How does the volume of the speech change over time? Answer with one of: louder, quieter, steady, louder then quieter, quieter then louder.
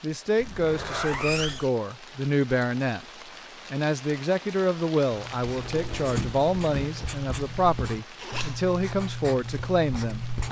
steady.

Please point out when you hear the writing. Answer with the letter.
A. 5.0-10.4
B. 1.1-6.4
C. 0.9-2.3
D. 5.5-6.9
A.